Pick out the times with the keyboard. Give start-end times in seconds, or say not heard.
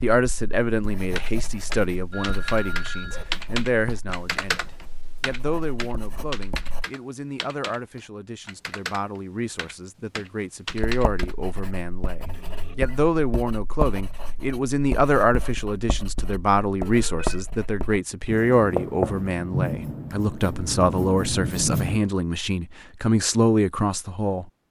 1.1-11.3.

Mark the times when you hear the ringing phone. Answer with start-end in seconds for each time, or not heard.
2.1-3.4, 12.2-13.0, 16.9-17.4.